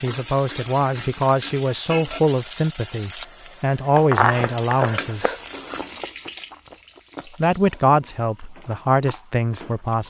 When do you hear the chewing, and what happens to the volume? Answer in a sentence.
The chewing can be heard from 4.0 to 10.0 s, getting quieter then louder.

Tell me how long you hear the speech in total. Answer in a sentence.
The speech can be heard for 8 seconds in total.